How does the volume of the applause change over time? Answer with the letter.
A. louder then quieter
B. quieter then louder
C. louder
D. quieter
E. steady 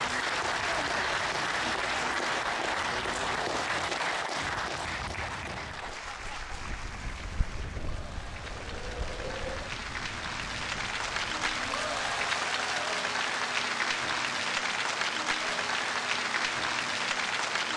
B.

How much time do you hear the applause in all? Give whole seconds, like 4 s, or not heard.
18 s.